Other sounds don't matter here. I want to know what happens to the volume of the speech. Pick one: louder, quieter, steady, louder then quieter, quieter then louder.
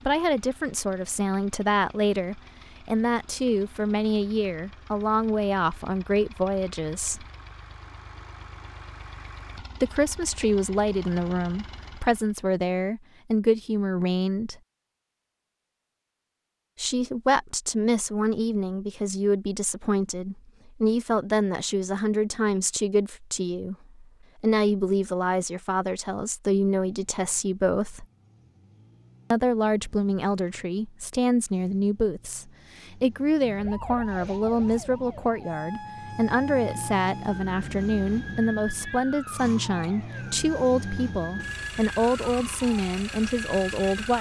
steady.